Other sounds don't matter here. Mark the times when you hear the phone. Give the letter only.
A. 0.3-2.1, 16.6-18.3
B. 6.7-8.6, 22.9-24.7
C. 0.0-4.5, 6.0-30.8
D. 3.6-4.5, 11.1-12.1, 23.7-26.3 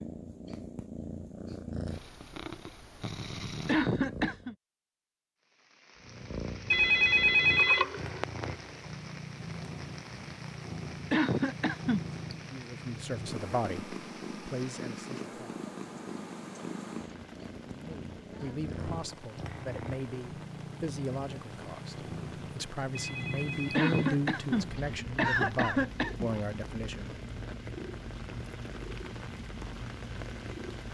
B.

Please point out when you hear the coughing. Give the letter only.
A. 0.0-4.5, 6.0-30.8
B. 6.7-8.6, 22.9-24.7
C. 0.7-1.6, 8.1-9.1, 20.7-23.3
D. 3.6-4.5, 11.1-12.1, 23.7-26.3
D.